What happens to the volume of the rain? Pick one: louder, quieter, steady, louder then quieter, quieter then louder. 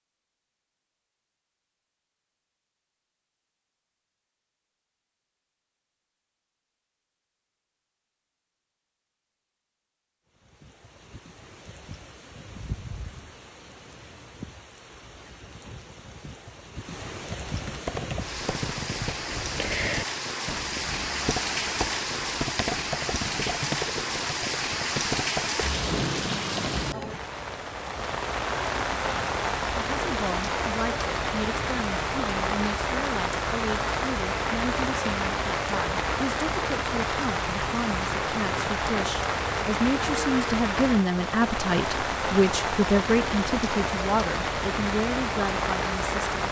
louder.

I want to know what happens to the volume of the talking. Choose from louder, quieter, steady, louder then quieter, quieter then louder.
louder.